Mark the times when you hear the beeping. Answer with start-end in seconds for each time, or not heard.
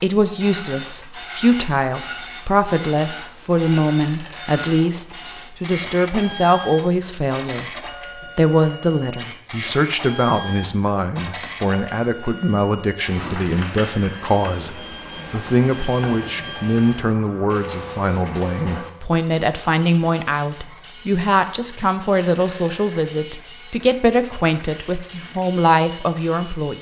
4.0-4.6, 13.3-14.2, 22.1-23.1.